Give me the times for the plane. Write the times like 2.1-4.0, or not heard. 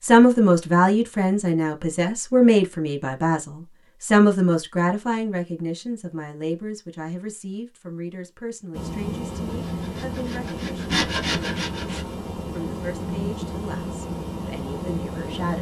8.7-15.5.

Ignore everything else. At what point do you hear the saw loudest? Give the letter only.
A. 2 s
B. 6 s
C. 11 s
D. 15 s
C.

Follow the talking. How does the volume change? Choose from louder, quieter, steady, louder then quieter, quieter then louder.
quieter.